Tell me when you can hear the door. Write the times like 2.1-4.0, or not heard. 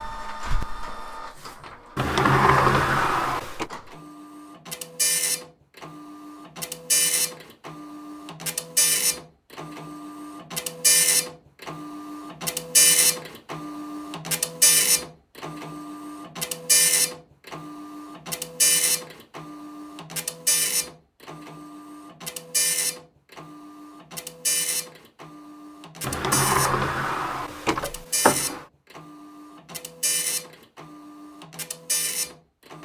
1.9-3.7, 26.0-28.6.